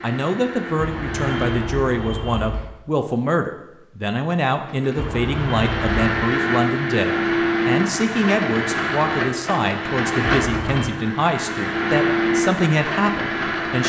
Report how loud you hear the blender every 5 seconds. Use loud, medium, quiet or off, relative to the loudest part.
medium, loud, loud.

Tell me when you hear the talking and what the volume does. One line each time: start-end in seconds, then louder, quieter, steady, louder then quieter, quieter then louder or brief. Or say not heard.
0.0-13.8 steady.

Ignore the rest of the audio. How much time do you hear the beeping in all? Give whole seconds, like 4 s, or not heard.
4 s.